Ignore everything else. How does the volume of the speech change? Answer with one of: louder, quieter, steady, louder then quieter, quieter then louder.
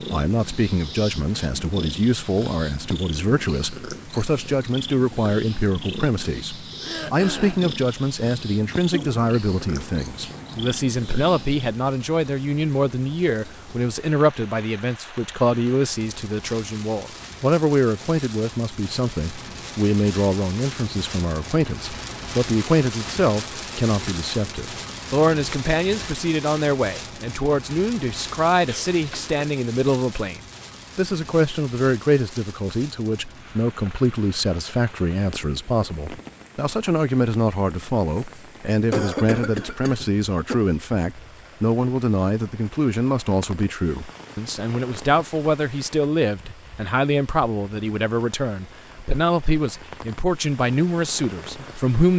steady.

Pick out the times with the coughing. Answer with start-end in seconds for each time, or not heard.
6.8-7.7, 28.6-29.9, 38.9-40.5.